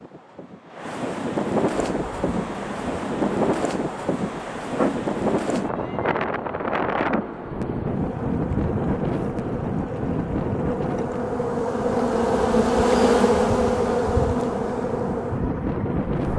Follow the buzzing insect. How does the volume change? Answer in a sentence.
The loudness of the buzzing insect goes up.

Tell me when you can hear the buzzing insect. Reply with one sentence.
You can hear the buzzing insect from 1.7 to 16.3 s.